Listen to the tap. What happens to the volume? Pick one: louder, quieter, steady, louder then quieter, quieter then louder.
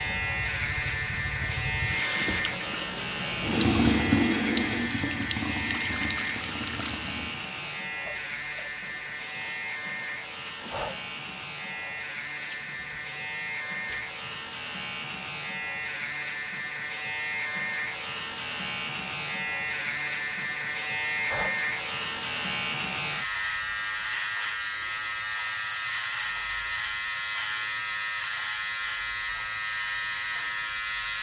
louder then quieter.